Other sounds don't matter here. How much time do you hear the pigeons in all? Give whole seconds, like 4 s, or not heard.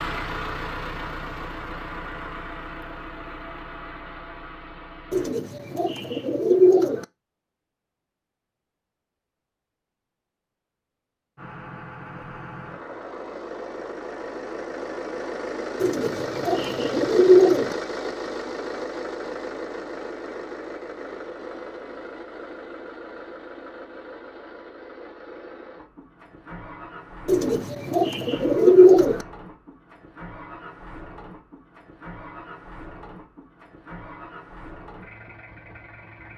6 s.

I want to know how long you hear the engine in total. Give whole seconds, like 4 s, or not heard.
30 s.